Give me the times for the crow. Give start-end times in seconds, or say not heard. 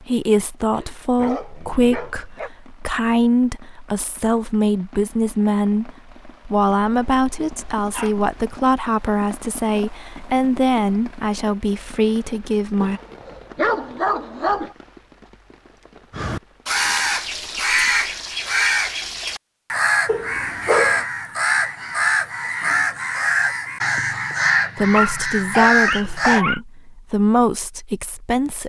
16.1-26.4.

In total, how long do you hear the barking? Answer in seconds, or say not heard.
8 s.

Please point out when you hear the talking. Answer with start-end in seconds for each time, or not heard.
0.0-13.0, 24.8-28.6.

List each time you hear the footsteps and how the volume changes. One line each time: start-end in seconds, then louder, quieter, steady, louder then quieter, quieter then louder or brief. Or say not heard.
not heard.